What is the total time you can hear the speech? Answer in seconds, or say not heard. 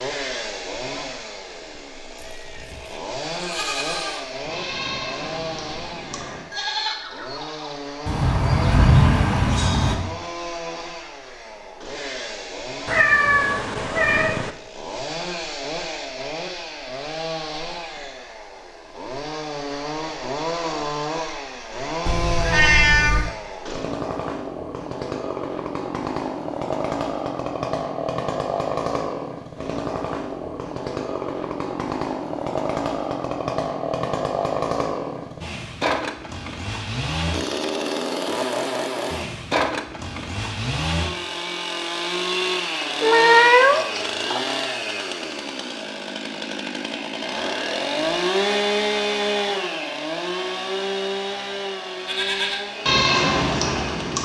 not heard.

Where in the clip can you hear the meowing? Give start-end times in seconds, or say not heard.
12.8-14.5, 22.1-23.4, 42.8-44.5.